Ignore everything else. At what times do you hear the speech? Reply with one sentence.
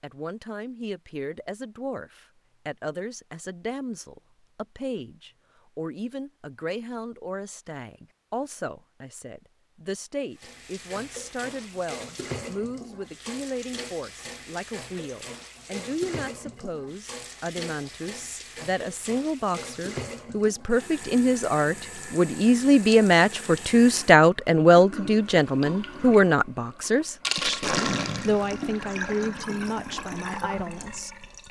You can hear the speech from 0.0 to 31.2 s.